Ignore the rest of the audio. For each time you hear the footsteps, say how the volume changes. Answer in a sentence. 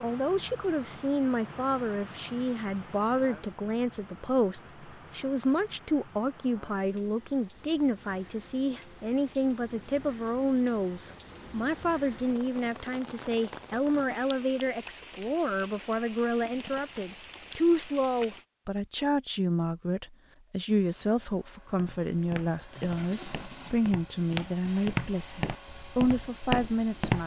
The footsteps can be heard from 21.7 to 27.2 s, getting louder.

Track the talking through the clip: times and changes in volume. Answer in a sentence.
You can hear the talking from 0.0 to 27.2 s, at a steady volume.